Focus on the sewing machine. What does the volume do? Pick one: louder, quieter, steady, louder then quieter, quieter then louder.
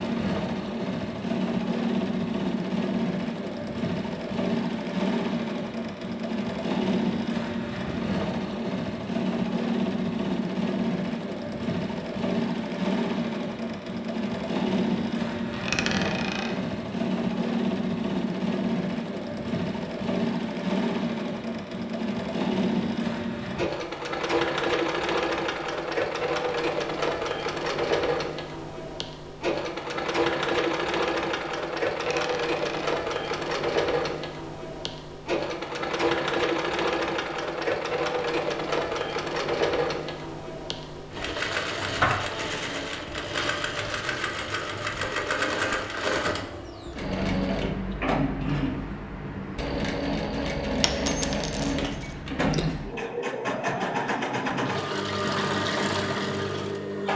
steady.